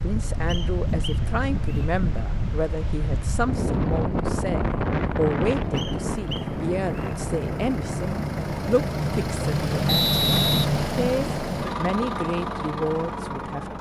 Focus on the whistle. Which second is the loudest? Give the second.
10 s.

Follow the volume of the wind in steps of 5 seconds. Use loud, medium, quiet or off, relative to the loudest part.
loud, loud, off.